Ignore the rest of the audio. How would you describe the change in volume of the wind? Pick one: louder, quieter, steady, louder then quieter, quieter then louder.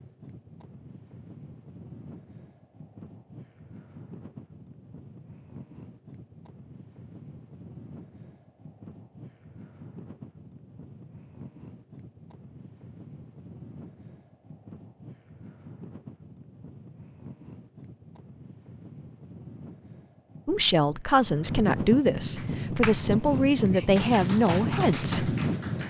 louder.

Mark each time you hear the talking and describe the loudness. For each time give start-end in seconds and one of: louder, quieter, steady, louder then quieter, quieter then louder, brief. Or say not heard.
20.4-25.4 steady.